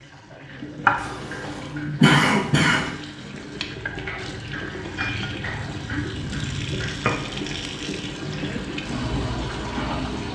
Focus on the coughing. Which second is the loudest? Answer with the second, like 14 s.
2 s.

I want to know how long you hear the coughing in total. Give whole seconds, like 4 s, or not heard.
2 s.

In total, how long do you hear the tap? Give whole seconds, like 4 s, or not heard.
10 s.